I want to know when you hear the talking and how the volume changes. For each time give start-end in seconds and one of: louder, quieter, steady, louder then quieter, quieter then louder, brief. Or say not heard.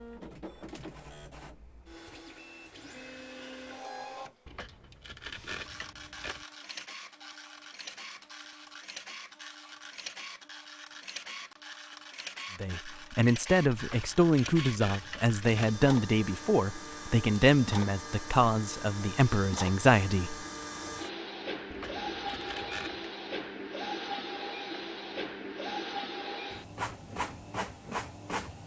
12.6-20.4 steady.